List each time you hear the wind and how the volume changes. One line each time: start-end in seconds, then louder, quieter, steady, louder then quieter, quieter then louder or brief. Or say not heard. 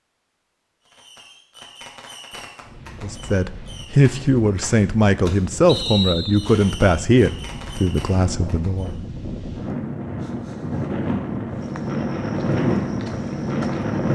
2.6-14.1 louder.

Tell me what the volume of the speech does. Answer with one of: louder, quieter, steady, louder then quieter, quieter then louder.
quieter.